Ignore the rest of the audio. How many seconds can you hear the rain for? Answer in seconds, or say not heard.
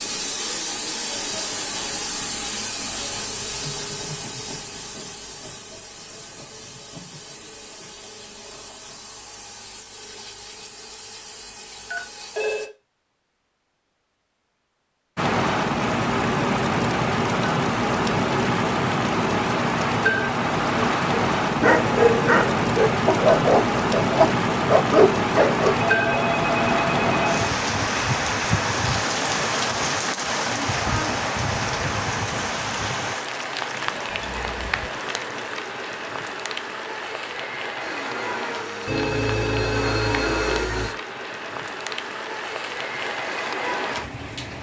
29 s.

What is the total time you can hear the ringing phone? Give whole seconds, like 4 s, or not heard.
5 s.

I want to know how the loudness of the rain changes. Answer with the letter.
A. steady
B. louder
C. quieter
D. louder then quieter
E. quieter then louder
C.